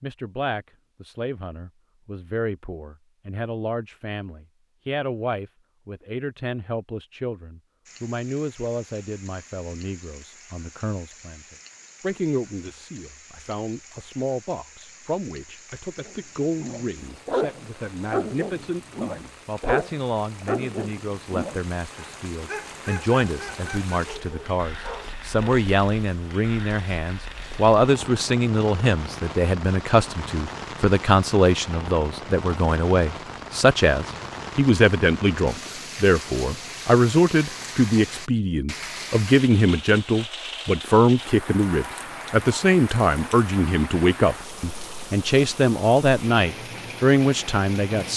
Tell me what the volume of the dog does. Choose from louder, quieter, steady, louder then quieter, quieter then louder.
quieter.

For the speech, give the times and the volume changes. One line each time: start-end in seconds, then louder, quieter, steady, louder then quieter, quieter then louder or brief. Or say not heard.
0.0-48.1 louder.